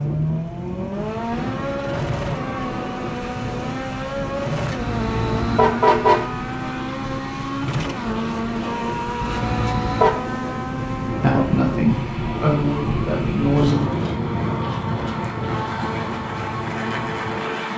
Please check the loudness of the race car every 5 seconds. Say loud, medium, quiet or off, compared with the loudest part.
loud, loud, medium, loud.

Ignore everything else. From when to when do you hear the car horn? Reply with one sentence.
The car horn can be heard from 4.8 to 6.3 s and from 9.2 to 10.2 s.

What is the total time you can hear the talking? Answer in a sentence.
You can hear the talking for 3 seconds altogether.